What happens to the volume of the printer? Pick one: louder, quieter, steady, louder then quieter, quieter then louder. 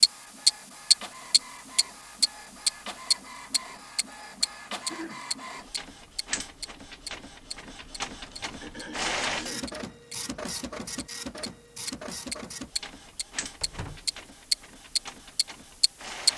louder then quieter.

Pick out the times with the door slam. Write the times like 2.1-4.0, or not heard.
13.6-14.2.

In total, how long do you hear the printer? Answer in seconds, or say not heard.
16 s.